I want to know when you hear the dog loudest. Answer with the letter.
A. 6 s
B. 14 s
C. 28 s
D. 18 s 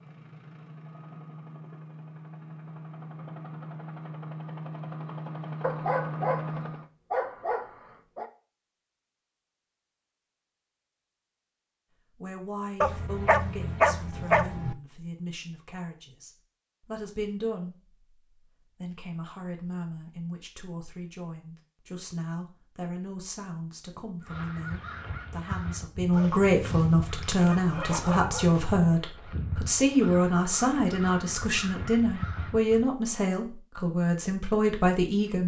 B.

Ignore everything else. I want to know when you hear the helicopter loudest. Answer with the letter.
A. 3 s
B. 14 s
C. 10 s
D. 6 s
D.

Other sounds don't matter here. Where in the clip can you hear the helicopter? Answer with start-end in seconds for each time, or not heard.
0.0-6.9.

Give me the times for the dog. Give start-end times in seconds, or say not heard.
5.6-8.3, 12.8-14.8, 26.1-28.6.